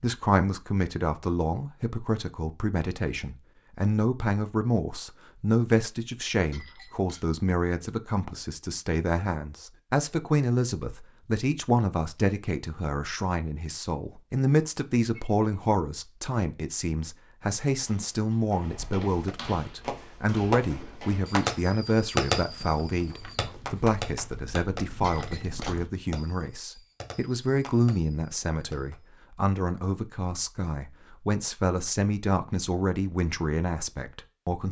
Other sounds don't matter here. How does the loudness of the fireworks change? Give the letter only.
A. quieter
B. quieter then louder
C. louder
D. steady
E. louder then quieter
A.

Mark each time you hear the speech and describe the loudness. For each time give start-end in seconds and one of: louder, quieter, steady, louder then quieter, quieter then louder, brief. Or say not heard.
0.0-34.6 steady.